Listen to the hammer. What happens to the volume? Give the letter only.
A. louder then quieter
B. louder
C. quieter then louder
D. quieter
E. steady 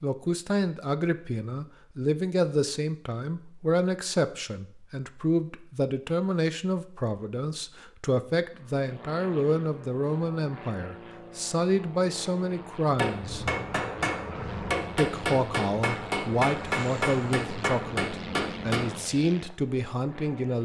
E.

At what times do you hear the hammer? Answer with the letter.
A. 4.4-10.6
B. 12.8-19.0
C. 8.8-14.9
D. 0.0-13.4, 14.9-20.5
B.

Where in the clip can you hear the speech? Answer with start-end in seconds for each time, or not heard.
0.0-13.4, 14.9-20.5.